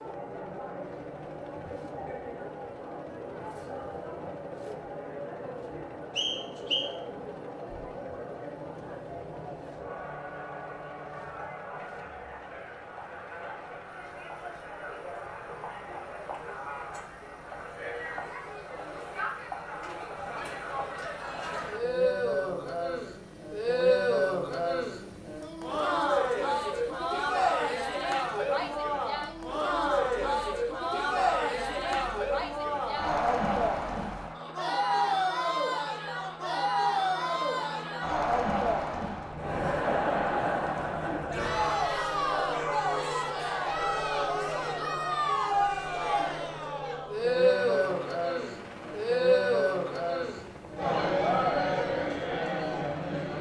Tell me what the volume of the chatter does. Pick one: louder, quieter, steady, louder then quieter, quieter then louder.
louder.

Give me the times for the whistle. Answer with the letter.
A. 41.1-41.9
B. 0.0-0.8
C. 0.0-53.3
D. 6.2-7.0
D.